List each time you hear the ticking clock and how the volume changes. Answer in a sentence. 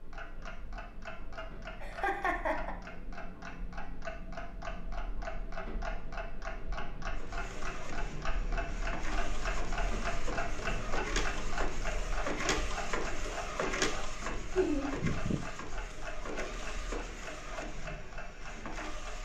You can hear the ticking clock from 0.0 to 19.2 s, getting louder then quieter.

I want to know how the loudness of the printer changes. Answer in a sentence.
The volume of the printer goes up, then down.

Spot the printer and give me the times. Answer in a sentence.
The printer can be heard from 7.2 to 19.2 s.